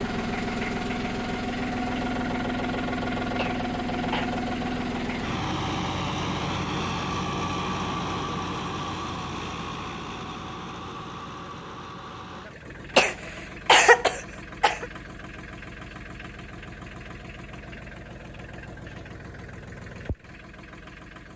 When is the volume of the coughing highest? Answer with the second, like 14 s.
14 s.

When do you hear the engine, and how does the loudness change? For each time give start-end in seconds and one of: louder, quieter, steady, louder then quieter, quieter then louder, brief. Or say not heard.
0.0-21.3 quieter.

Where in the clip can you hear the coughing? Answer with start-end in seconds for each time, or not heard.
3.4-4.3, 12.9-14.8.